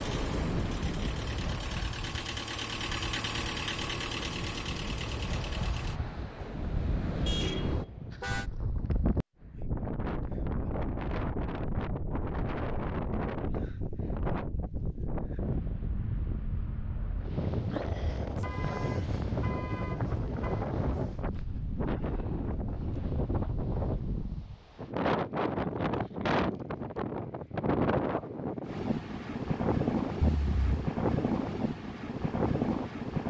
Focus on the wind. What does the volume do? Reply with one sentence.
The volume of the wind goes up.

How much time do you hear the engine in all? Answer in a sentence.
The engine can be heard for 6 seconds in total.